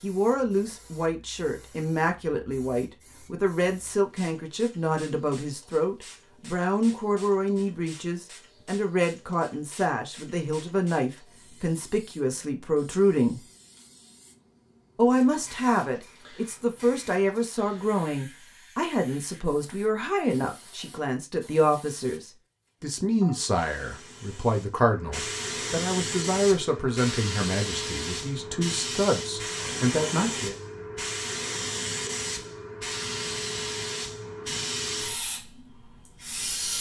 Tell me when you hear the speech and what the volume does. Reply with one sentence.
You can hear the speech from 0.0 to 13.4 s, at a steady volume; and from 14.9 to 30.6 s, at a steady volume.